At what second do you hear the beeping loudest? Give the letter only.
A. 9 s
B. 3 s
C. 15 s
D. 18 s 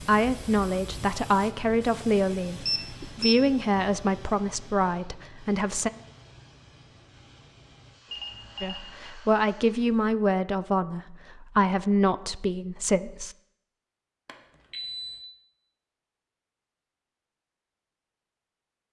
B.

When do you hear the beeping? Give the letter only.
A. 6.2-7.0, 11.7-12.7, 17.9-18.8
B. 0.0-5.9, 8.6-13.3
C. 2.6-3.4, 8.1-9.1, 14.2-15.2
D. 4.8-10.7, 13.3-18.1
C.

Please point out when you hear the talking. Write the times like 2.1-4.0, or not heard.
0.0-5.9, 8.6-13.3.